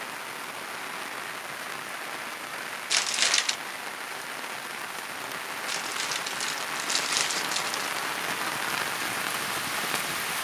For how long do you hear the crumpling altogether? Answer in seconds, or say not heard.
3 s.